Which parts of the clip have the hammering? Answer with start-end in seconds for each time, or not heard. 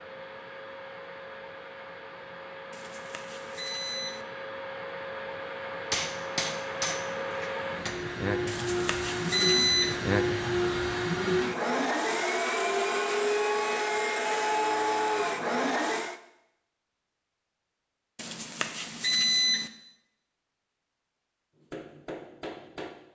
5.9-8.0, 21.6-22.9.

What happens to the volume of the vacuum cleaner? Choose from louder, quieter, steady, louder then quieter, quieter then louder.
louder.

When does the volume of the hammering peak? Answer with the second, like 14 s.
6 s.